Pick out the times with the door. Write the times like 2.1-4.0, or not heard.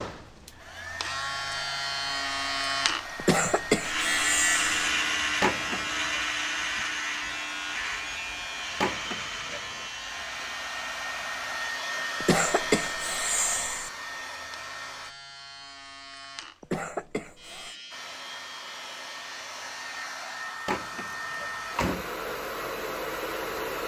5.4-6.2, 8.8-9.8, 20.6-22.1.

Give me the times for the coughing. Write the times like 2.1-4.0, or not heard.
3.1-4.8, 12.2-13.9, 16.6-17.8.